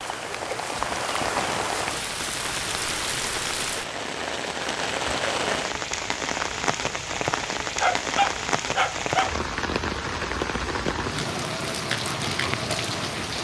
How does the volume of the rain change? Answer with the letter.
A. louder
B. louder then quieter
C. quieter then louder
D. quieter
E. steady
E.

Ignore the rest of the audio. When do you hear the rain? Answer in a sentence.
The rain can be heard from 0.0 to 13.4 s.